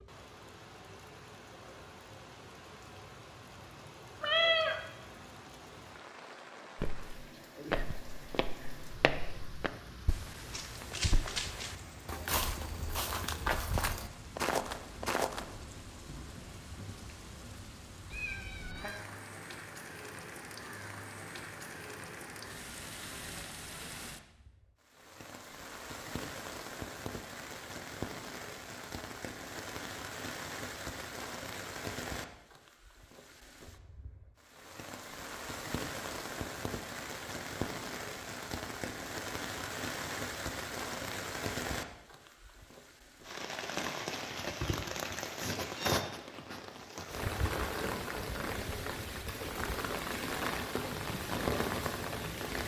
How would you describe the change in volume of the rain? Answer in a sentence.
The loudness of the rain goes up.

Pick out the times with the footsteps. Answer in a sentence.
The footsteps can be heard from 6.8 to 15.4 s.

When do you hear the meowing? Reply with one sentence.
The meowing can be heard from 4.2 to 4.8 s, from 18.1 to 19.0 s and from 44.5 to 46.0 s.